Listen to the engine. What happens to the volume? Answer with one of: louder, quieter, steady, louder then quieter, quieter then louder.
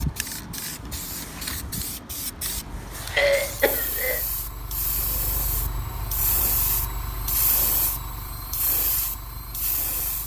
louder then quieter.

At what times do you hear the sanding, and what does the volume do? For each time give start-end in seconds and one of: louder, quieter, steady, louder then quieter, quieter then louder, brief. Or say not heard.
not heard.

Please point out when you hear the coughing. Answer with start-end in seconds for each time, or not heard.
3.1-4.2.